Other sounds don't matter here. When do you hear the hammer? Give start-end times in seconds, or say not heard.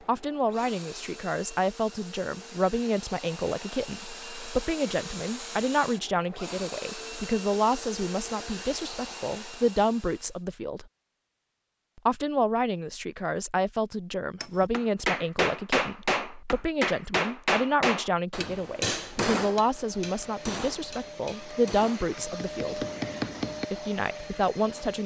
14.4-23.6.